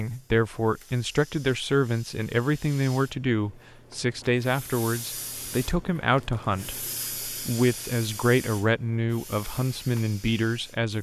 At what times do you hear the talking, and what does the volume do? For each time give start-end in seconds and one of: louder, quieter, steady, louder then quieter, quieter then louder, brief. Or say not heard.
0.0-10.9 steady.